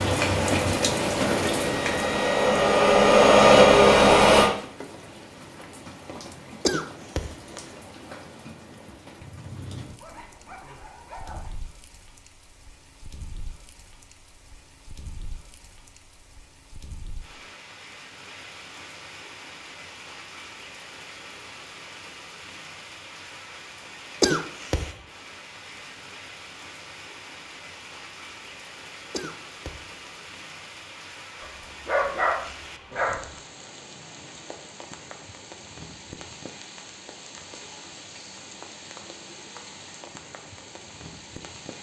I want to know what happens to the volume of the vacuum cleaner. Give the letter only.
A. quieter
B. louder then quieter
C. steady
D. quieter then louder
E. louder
E.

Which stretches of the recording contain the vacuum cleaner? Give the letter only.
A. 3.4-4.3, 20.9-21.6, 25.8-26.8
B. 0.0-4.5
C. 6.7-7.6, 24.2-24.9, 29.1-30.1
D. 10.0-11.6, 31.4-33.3
B.